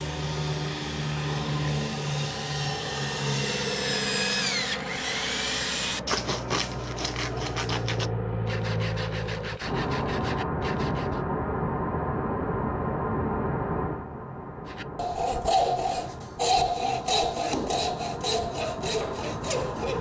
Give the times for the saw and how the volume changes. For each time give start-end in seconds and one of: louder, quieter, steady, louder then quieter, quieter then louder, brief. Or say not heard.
0.0-11.2 louder then quieter
14.7-19.9 quieter.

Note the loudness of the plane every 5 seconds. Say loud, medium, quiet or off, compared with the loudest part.
loud, loud, loud, medium.